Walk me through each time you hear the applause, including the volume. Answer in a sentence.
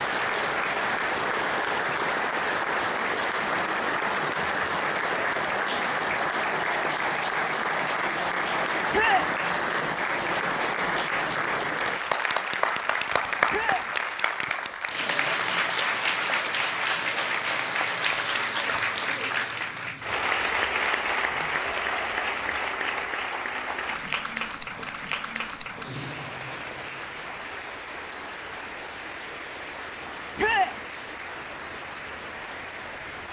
You can hear the applause from 0.0 to 33.2 s, getting quieter.